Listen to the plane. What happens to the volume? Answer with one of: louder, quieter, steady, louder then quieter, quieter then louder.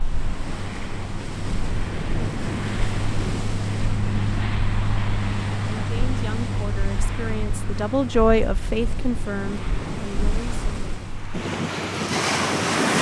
louder then quieter.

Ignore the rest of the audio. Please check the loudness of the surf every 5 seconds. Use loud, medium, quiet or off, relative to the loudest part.
medium, medium, loud.